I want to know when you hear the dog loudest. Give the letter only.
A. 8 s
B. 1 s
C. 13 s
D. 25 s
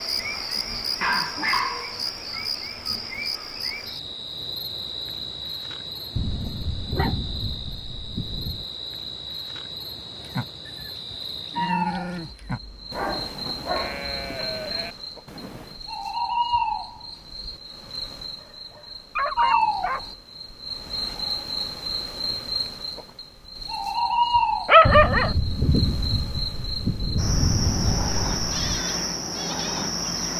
D.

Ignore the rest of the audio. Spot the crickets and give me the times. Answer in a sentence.
The crickets can be heard from 0.0 to 30.3 s.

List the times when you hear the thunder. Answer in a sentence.
The thunder can be heard from 6.2 to 8.7 s and from 24.9 to 28.9 s.